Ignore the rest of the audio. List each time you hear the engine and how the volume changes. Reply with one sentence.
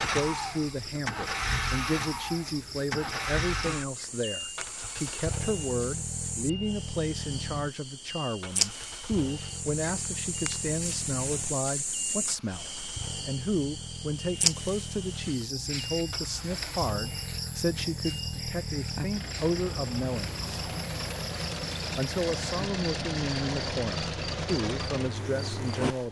You can hear the engine from 0.0 to 26.0 s, getting quieter then louder.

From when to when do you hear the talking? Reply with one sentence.
The talking can be heard from 0.0 to 20.4 s and from 21.9 to 26.0 s.